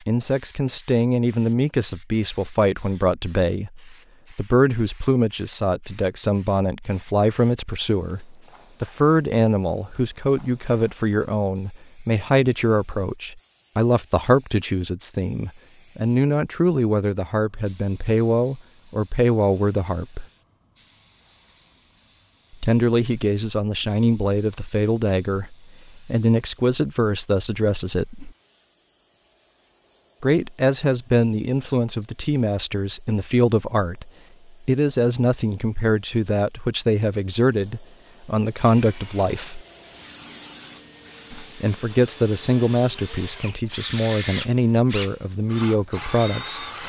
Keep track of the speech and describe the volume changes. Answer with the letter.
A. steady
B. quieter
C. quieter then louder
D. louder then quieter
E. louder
A.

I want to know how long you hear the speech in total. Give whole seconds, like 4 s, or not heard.
41 s.